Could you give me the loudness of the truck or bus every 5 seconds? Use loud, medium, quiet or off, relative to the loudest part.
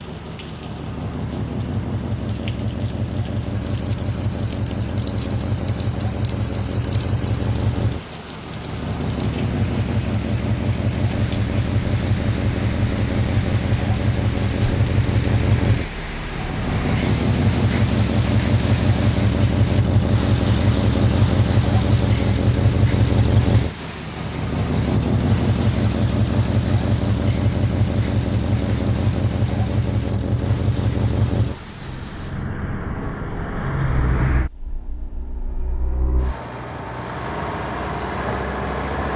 medium, medium, loud, loud, loud, loud, medium, medium.